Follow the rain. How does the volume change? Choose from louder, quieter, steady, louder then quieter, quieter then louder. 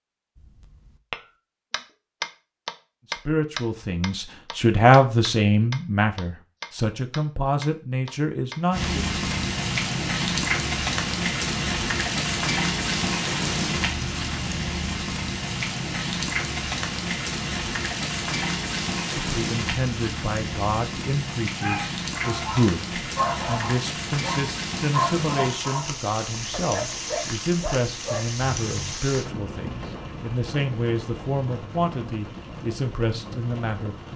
quieter.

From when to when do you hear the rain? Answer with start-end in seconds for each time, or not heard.
8.7-34.1.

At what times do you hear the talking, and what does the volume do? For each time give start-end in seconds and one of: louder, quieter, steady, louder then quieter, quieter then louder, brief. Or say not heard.
3.1-9.1 louder then quieter
19.1-34.0 steady.